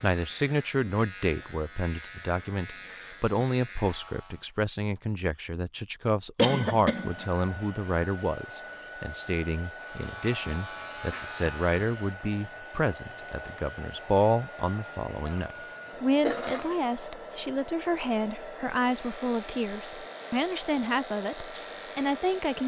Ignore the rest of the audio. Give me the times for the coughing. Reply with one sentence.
The coughing can be heard from 6.3 to 7.2 s and from 15.2 to 16.8 s.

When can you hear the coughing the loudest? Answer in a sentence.
The loudest moment of the coughing is at 7 seconds.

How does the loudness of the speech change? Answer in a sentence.
The loudness of the speech stays about the same.